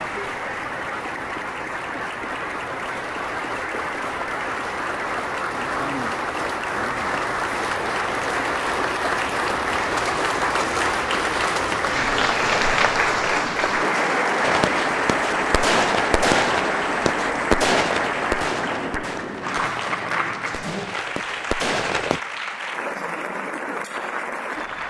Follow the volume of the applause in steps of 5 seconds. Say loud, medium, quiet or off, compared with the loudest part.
medium, loud, loud, loud, medium.